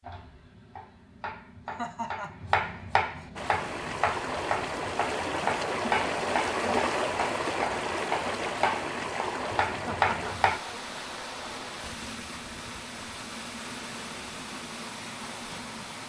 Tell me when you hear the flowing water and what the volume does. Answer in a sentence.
You can hear the flowing water from 3.4 to 16.0 s, getting quieter.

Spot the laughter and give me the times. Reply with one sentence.
You can hear the laughter from 1.6 to 2.4 s and from 9.8 to 10.3 s.